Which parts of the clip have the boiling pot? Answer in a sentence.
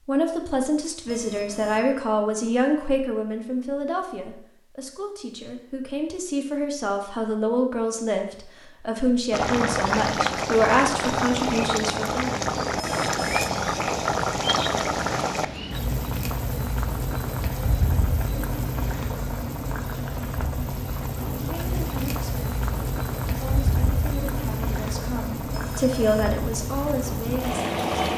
You can hear the boiling pot from 9.3 to 28.1 s.